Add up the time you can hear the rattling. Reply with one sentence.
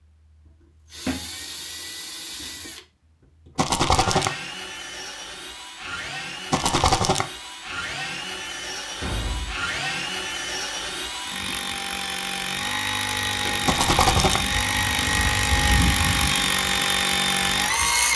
The rattling can be heard for 2 seconds in total.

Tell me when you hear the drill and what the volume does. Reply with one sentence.
The drill can be heard from 0.1 to 18.1 s, getting louder.